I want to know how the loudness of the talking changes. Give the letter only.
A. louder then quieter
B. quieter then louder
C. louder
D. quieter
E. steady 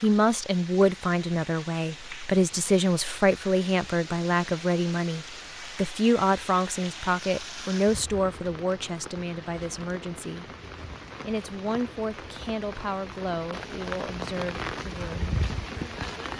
D.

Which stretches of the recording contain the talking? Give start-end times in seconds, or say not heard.
0.0-10.4, 11.2-15.3.